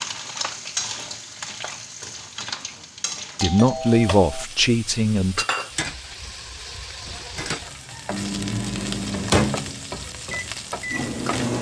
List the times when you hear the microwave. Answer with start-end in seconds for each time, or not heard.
8.1-11.5.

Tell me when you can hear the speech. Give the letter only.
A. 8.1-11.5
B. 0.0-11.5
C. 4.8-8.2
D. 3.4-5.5
D.